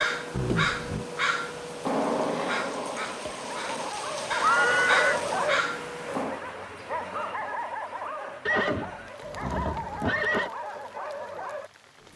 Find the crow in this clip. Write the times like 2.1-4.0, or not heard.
0.0-6.4.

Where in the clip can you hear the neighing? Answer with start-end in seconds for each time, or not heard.
0.3-1.1, 4.4-5.2, 8.4-10.5.